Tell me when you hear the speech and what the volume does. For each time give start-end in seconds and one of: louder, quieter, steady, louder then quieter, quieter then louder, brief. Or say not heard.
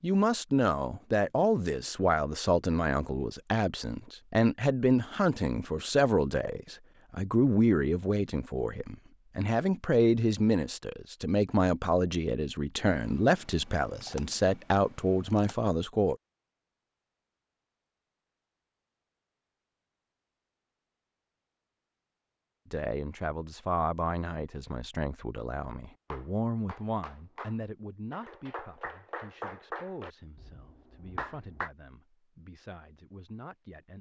0.0-16.1 steady
22.7-33.9 quieter.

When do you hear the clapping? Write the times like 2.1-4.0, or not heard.
26.1-31.7.